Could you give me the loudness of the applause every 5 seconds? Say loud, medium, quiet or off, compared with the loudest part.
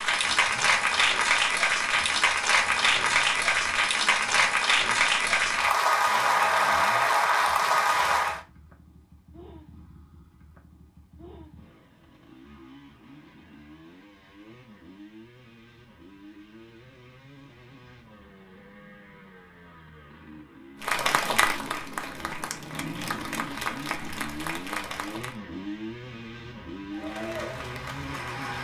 loud, loud, off, off, medium, quiet.